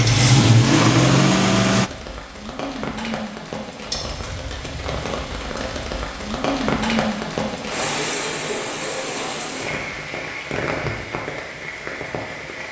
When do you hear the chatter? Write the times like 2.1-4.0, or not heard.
not heard.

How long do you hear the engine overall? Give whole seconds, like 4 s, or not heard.
2 s.